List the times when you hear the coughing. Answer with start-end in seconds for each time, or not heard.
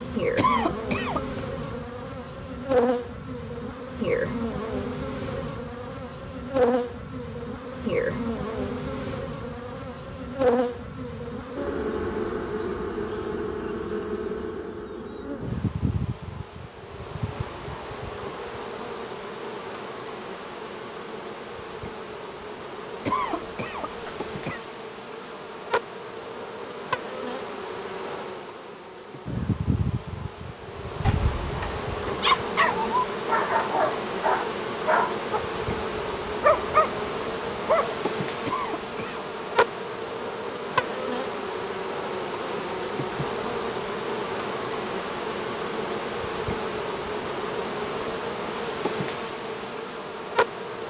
0.3-1.4, 23.1-24.6, 38.5-39.2.